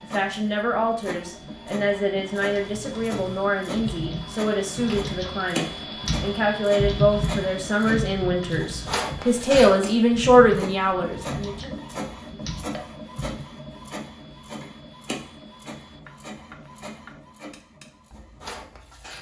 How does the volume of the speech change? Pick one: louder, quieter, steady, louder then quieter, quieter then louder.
louder.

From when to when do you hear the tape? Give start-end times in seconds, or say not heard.
not heard.